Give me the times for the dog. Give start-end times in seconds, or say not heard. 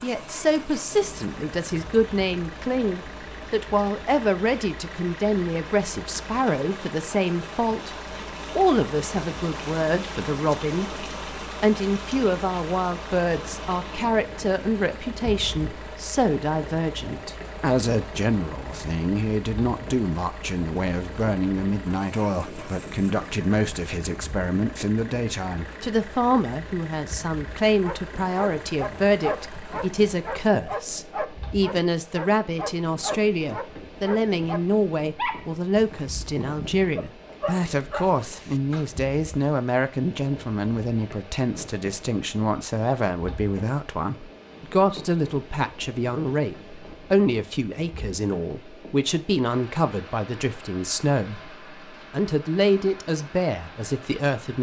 27.8-39.0.